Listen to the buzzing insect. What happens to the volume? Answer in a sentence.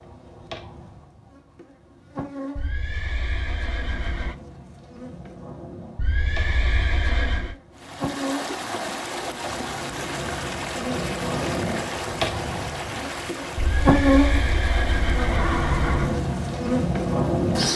The volume of the buzzing insect goes up.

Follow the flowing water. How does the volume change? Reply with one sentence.
The volume of the flowing water goes down.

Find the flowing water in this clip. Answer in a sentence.
You can hear the flowing water from 7.8 to 17.7 s.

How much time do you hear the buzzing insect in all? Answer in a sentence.
You can hear the buzzing insect for 18 seconds altogether.